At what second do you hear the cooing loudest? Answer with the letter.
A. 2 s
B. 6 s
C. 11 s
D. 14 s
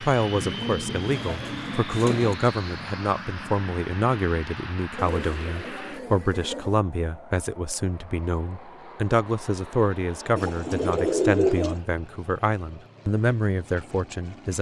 C.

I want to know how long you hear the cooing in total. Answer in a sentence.
The cooing can be heard for 5 seconds in total.